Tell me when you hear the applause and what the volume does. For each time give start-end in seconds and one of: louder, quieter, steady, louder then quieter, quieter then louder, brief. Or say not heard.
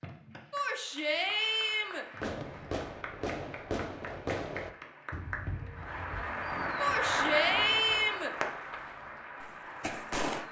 0.0-10.4 louder then quieter.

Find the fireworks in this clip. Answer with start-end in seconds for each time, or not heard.
2.2-10.4.